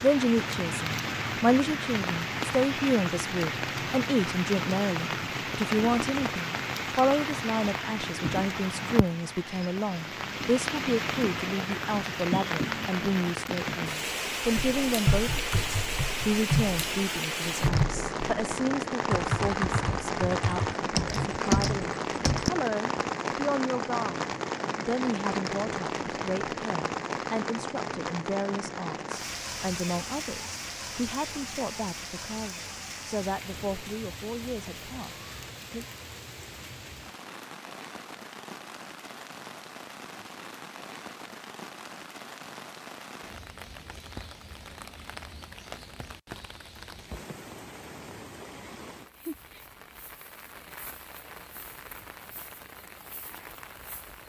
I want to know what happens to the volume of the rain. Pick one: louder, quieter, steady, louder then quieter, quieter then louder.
quieter.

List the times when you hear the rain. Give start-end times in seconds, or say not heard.
0.0-54.2.